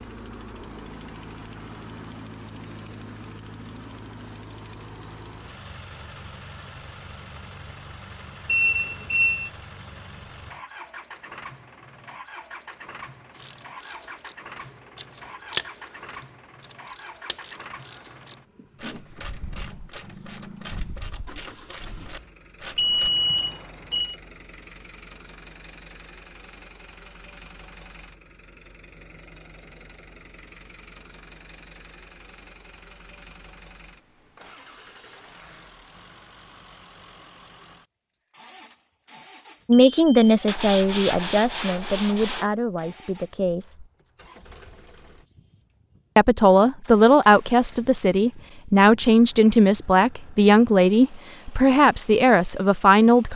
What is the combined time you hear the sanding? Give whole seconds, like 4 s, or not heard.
2 s.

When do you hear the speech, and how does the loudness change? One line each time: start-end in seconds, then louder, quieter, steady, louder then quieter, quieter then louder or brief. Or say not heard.
39.6-43.9 quieter
46.1-53.3 steady.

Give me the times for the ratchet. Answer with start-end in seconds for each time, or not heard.
13.3-23.1.